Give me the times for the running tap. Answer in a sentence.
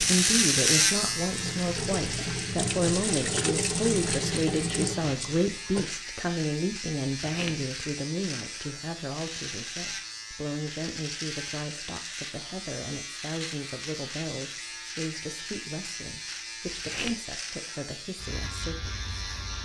The running tap can be heard from 0.0 to 6.0 s.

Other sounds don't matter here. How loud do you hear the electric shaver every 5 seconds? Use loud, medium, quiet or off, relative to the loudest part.
loud, medium, medium, medium.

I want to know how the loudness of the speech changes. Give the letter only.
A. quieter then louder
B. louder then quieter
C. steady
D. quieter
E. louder
D.